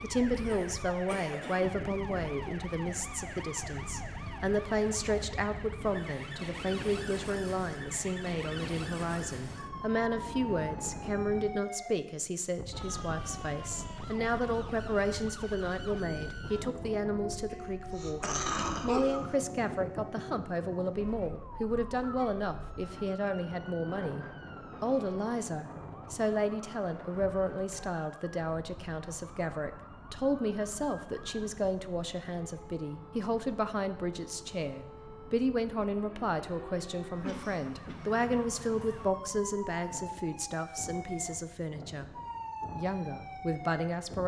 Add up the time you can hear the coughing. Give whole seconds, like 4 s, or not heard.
4 s.